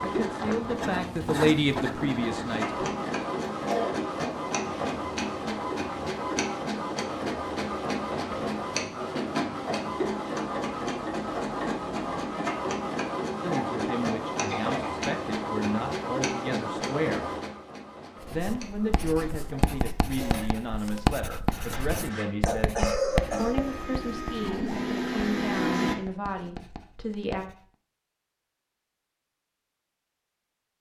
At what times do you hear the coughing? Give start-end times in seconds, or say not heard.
3.5-4.0, 13.4-15.1, 22.4-23.6.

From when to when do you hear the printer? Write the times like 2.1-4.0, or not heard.
0.0-25.9.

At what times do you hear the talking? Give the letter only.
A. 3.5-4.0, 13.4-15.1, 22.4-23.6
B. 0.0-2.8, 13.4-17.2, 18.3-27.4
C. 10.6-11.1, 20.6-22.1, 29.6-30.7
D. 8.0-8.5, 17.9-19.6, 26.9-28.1
B.